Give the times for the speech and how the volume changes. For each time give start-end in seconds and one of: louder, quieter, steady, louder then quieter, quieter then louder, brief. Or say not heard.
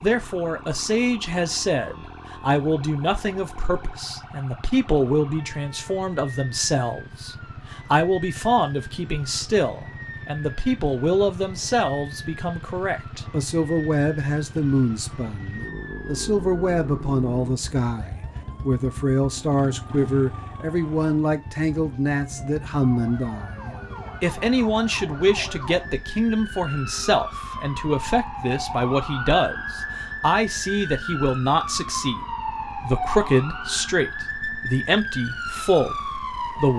0.0-36.7 steady.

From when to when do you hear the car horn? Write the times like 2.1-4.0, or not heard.
not heard.